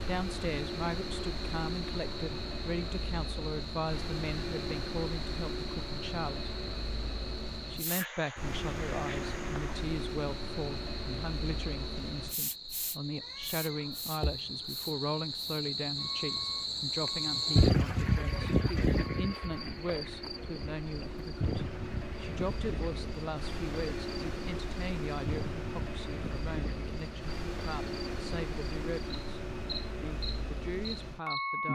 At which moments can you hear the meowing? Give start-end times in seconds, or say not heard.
13.2-14.4.